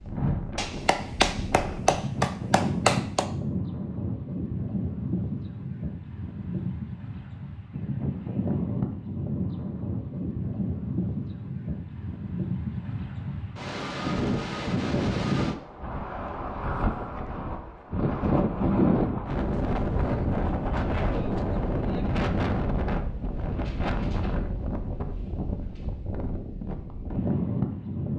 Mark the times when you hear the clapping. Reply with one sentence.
You can hear the clapping from 0.6 to 3.2 s.